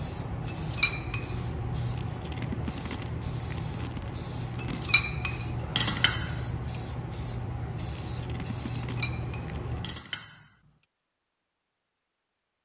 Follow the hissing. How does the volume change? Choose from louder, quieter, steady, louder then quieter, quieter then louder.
steady.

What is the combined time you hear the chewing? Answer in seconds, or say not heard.
5 s.